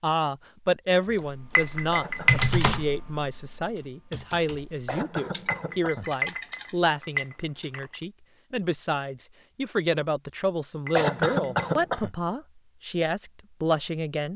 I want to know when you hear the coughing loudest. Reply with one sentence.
The loudest moment of the coughing is at 11 seconds.